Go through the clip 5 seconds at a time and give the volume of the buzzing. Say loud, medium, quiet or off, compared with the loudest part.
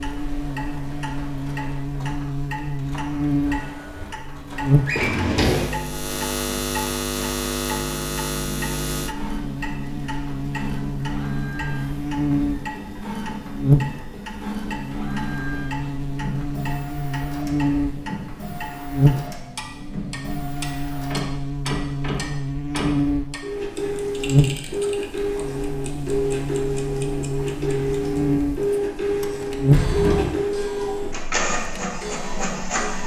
loud, loud, loud, loud, loud, loud, off.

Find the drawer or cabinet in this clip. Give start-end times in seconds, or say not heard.
4.8-5.7, 29.6-30.4.